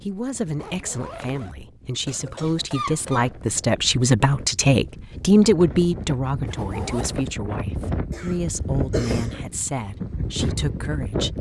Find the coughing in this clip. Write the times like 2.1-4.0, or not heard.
2.0-3.3, 8.1-9.4.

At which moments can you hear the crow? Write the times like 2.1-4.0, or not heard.
not heard.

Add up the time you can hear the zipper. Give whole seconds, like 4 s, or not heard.
2 s.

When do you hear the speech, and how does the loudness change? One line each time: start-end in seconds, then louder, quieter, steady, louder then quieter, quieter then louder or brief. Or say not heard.
0.0-11.3 louder then quieter.